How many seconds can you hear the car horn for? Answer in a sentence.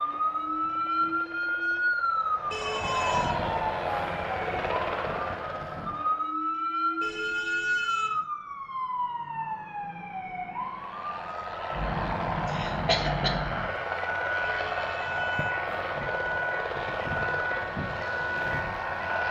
You can hear the car horn for 3 seconds altogether.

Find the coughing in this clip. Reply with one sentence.
You can hear the coughing from 12.4 to 13.3 s.